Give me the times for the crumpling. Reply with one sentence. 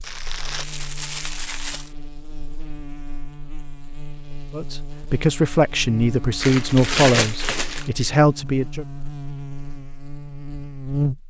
The crumpling can be heard from 0.0 to 1.9 s and from 6.4 to 7.9 s.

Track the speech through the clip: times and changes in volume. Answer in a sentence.
The speech can be heard from 4.5 to 8.8 s, at a steady volume.